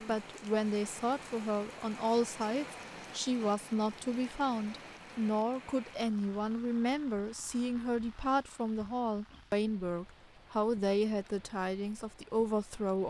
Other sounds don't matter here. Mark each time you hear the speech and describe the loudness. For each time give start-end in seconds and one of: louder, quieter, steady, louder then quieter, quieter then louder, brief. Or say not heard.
0.1-13.0 steady.